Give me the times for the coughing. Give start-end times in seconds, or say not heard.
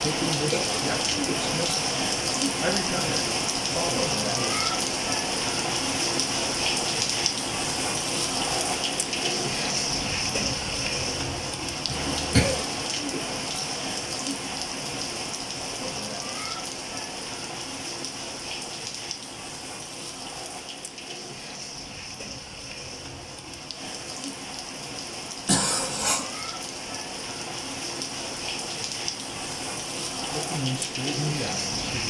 11.8-12.7, 25.4-26.2.